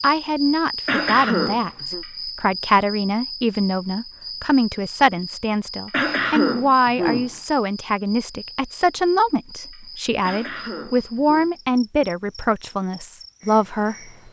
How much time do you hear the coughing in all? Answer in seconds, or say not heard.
4 s.